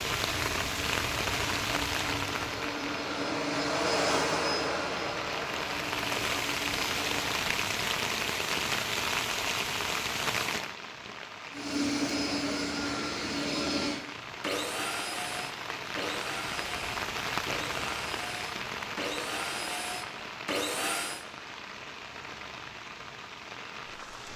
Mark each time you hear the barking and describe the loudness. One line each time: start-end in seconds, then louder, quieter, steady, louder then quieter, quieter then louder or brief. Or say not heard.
not heard.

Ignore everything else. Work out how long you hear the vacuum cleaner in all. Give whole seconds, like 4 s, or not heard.
17 s.